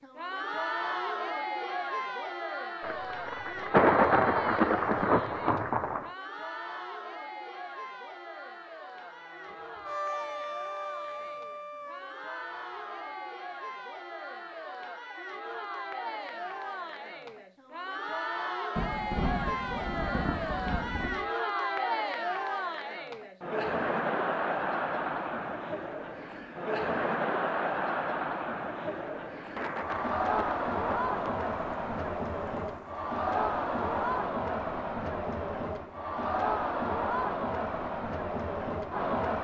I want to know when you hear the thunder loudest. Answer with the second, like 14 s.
4 s.